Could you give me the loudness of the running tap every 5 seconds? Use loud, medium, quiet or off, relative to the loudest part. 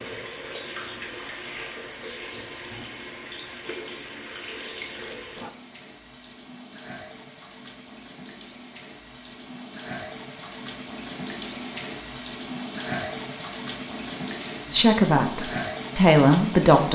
medium, medium, loud, loud.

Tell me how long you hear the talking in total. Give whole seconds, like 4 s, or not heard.
2 s.